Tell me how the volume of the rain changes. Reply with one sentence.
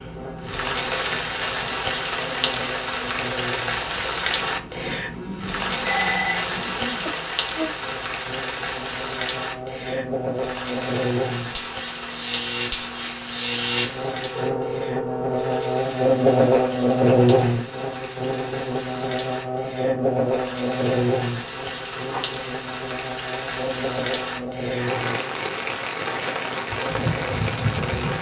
The volume of the rain goes down, then up.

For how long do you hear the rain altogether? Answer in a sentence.
The rain can be heard for 28 seconds in total.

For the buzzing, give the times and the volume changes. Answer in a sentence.
You can hear the buzzing from 0.0 to 28.1 s, getting louder then quieter.